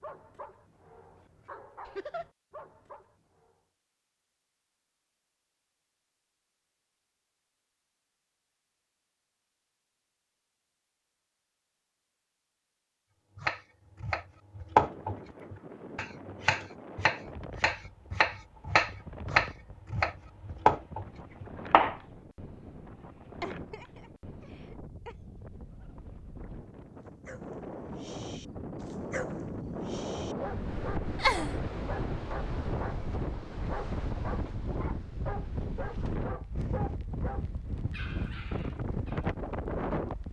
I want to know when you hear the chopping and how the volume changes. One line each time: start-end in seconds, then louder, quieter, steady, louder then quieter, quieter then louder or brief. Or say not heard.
13.3-22.0 quieter then louder.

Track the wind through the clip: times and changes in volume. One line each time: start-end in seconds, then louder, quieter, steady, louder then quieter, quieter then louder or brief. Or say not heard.
14.8-40.2 louder.